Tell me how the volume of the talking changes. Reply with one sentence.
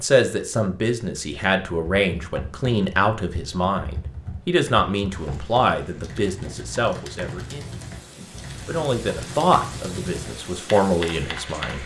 The loudness of the talking stays about the same.